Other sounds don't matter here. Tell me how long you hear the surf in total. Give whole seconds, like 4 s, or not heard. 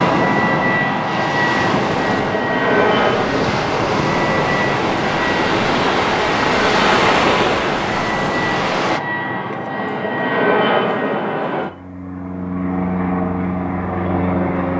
9 s.